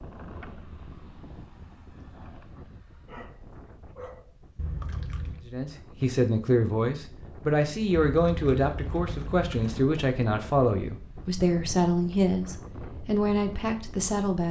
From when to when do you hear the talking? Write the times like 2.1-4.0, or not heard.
5.5-14.4.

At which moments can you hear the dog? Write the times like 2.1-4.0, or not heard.
3.0-4.3.